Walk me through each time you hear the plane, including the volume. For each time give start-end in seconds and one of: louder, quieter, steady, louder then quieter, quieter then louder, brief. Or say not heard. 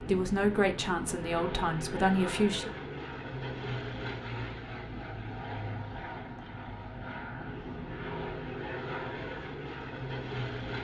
0.0-10.8 steady.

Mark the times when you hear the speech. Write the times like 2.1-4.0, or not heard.
0.0-2.7.